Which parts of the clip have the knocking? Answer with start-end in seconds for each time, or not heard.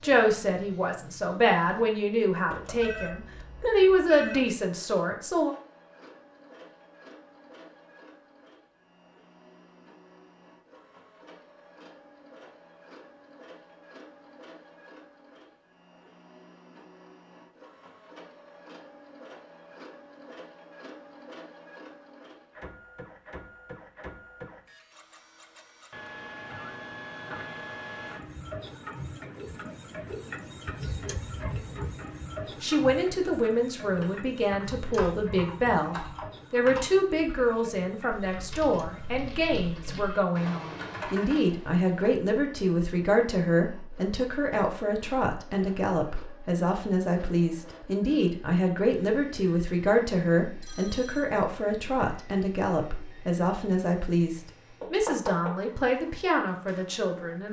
2.5-3.0, 54.8-55.5.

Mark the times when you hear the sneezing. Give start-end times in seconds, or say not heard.
not heard.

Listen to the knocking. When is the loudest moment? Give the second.
55 s.